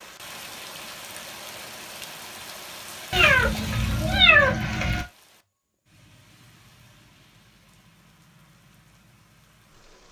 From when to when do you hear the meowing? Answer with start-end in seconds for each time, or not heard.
3.1-5.0.